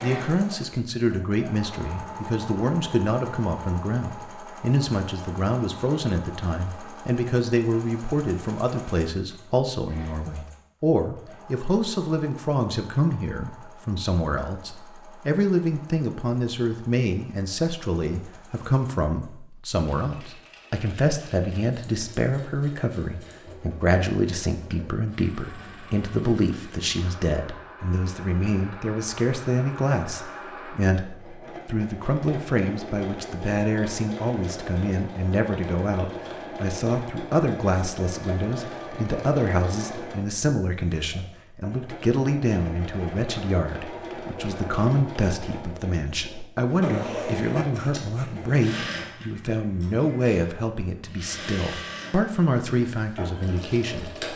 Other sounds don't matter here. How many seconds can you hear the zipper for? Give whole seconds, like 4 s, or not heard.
2 s.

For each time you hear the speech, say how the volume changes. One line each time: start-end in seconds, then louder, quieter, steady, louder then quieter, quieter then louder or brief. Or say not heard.
0.0-54.2 steady.